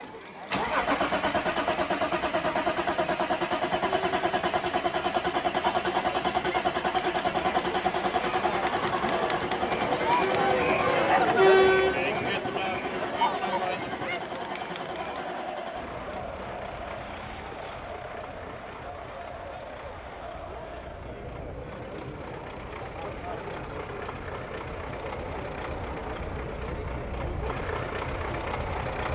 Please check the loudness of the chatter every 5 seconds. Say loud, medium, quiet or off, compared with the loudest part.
quiet, medium, loud, quiet, quiet, quiet.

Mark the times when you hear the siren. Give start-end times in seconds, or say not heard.
not heard.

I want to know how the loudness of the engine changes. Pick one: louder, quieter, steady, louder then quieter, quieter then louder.
quieter then louder.